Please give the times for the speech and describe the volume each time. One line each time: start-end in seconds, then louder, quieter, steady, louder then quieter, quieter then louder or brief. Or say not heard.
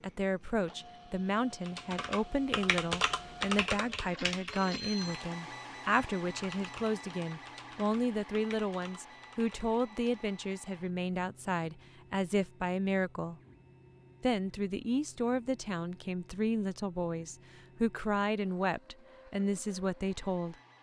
0.0-13.4 steady
14.2-20.6 steady.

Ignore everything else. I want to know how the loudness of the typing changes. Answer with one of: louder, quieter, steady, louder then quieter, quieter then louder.
quieter.